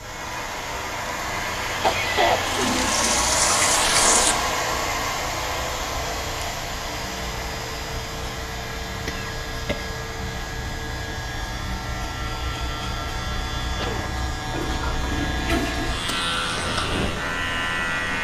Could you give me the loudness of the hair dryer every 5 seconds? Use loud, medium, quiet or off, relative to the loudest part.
loud, medium, quiet, quiet.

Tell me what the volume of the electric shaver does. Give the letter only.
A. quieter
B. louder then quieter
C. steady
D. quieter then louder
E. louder
E.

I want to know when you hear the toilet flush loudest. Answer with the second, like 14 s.
4 s.